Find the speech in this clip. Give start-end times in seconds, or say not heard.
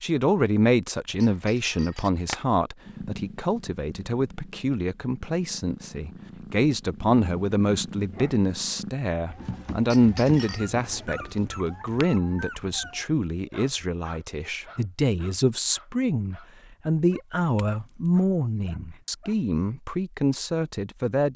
0.0-21.3.